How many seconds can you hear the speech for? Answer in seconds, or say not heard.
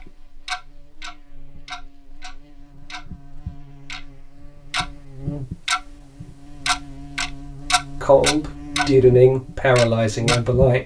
3 s.